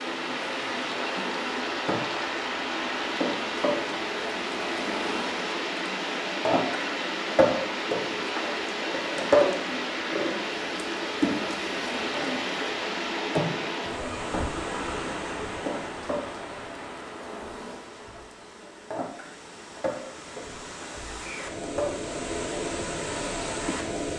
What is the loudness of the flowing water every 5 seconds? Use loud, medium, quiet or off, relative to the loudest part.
loud, loud, loud, medium, loud.